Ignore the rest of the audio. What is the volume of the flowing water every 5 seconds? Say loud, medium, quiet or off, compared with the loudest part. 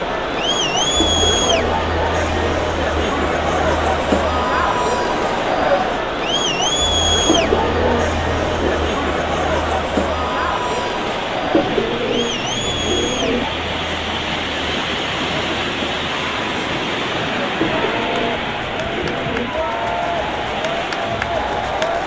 medium, medium, loud, loud, medium.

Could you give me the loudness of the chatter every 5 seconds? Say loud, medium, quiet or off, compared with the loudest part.
loud, loud, medium, medium, loud.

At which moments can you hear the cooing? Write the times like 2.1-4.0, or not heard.
0.9-2.8, 7.2-8.8, 11.5-13.4, 17.6-19.6.